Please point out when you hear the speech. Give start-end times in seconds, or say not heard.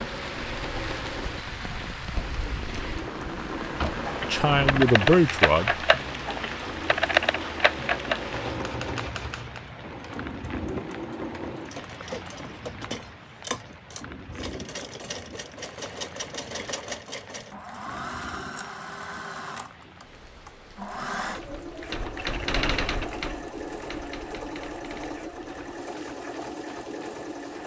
4.2-5.8.